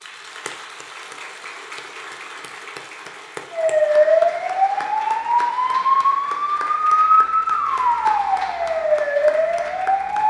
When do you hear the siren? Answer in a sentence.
You can hear the siren from 3.5 to 10.2 s.